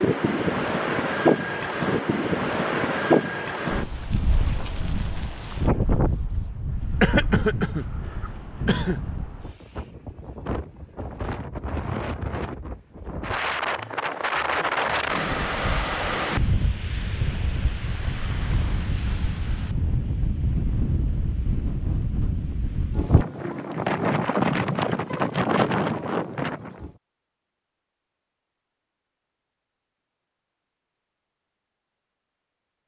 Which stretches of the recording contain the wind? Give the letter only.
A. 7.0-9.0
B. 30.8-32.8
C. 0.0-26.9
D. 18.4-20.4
C.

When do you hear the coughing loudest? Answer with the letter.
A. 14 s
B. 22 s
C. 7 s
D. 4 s
C.